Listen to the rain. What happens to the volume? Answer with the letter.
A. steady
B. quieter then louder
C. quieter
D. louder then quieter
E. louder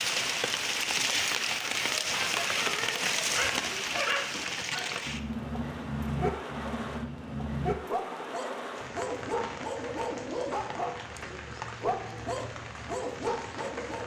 C.